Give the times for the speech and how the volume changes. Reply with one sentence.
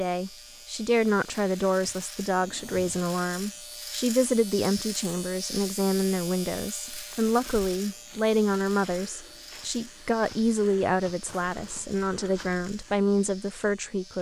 You can hear the speech from 0.0 to 14.1 s, at a steady volume.